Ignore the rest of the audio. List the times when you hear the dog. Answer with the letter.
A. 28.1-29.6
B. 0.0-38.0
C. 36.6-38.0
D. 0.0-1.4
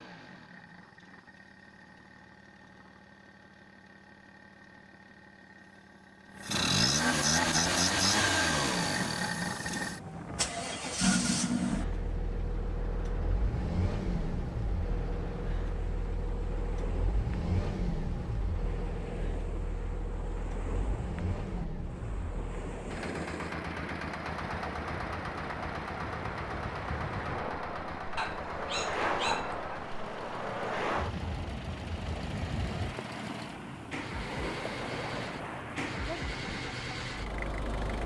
A.